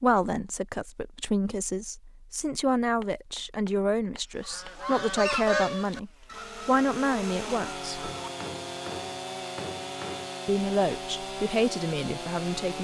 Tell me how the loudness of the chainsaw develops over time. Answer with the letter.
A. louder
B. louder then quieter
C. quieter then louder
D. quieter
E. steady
E.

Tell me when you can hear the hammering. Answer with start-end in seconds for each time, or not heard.
3.0-4.7, 8.0-10.3.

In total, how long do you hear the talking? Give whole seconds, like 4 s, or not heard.
10 s.